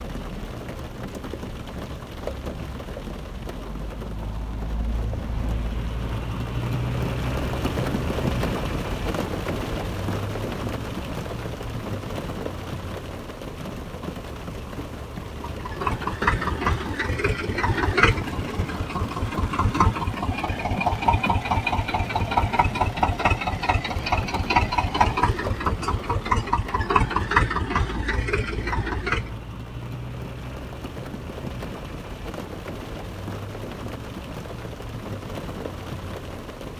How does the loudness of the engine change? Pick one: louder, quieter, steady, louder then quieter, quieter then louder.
steady.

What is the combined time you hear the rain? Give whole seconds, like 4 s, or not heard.
37 s.